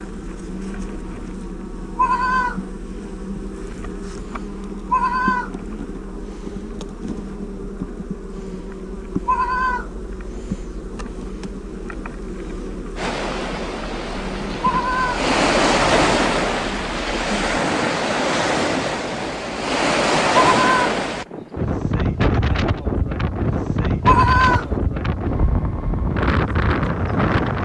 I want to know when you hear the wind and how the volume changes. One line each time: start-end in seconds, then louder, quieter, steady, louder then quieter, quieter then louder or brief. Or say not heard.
12.9-27.5 steady.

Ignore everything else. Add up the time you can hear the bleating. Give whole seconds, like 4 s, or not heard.
4 s.